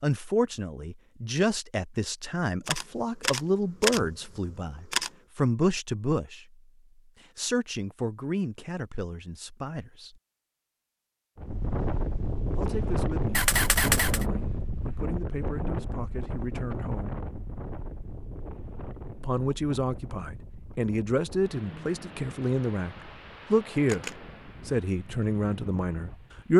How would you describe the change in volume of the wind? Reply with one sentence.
The loudness of the wind goes down.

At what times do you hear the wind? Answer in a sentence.
You can hear the wind from 11.3 to 26.5 s.